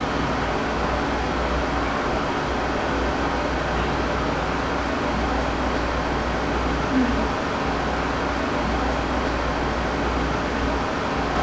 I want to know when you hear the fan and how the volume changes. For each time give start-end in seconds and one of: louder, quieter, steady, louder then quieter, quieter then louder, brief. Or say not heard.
0.0-11.3 steady.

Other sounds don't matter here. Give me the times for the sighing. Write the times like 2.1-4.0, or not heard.
6.8-7.2.